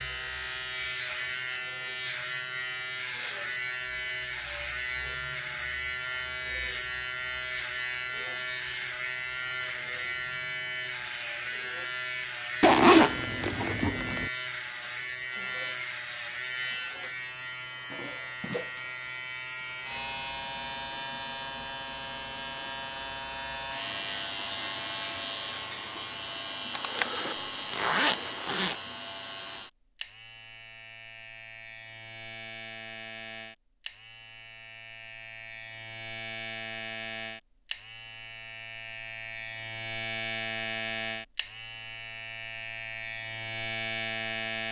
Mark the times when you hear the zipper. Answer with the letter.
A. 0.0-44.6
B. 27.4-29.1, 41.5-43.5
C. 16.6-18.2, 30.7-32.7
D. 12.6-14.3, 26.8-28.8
D.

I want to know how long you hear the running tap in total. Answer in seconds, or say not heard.
not heard.